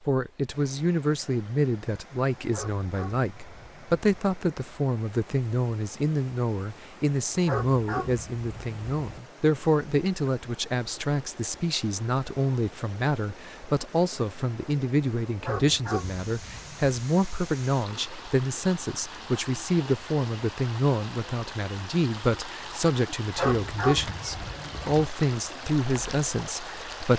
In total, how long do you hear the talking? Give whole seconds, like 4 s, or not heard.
27 s.